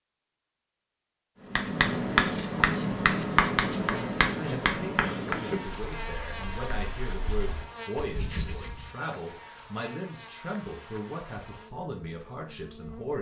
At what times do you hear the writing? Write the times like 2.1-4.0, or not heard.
1.4-8.9.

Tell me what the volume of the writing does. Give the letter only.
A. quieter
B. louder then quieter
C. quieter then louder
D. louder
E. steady
C.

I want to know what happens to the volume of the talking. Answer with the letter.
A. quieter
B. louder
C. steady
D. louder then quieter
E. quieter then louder
C.